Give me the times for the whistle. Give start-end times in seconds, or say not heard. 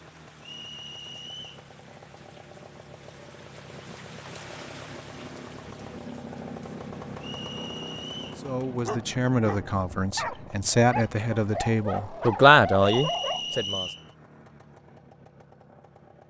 0.4-1.6, 7.2-8.4, 12.8-14.1.